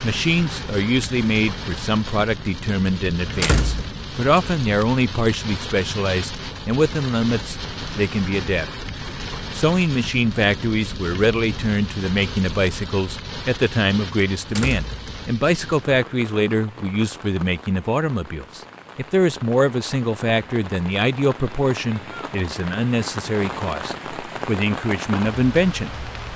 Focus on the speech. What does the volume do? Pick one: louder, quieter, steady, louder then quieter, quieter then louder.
steady.